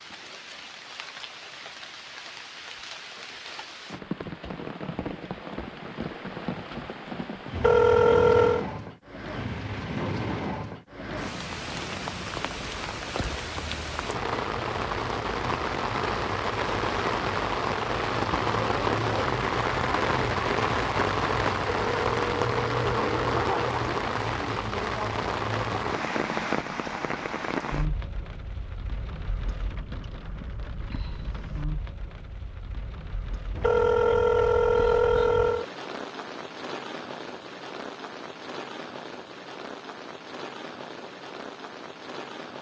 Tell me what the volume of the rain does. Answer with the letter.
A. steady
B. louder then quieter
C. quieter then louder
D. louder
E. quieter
B.